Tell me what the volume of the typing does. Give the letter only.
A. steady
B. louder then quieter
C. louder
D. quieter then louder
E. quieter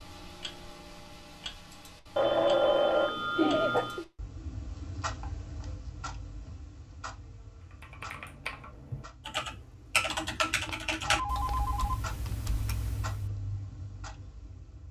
B.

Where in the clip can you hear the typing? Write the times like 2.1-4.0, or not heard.
7.7-13.3.